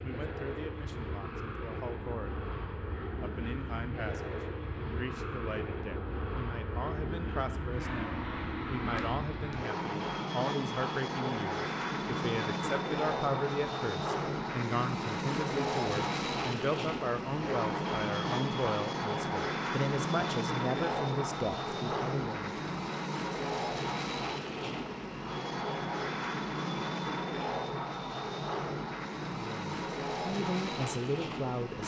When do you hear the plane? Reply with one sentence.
You can hear the plane from 0.0 to 31.8 s.